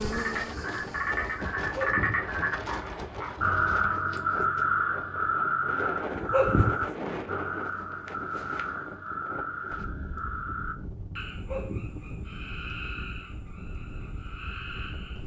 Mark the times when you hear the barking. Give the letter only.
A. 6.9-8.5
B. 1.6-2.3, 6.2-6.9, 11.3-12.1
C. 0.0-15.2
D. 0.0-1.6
B.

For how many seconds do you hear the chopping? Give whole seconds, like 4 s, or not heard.
not heard.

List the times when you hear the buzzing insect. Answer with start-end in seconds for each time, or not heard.
0.0-1.6.